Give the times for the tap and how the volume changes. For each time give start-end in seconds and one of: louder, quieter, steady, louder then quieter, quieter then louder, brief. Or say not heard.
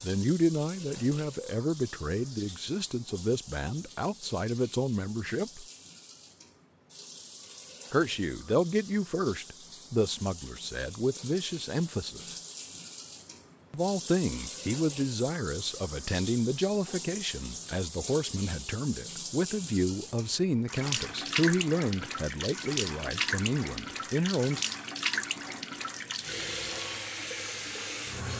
0.0-28.3 louder.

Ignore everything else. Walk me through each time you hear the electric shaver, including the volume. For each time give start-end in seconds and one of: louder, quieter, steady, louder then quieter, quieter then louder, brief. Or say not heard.
not heard.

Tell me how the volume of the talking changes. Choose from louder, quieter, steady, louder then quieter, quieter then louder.
steady.